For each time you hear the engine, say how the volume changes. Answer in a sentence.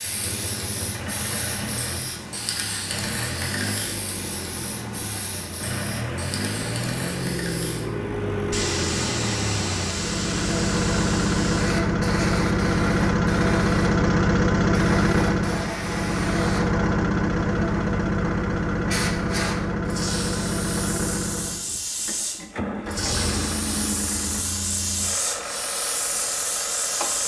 The engine can be heard from 0.0 to 27.2 s, getting louder then quieter.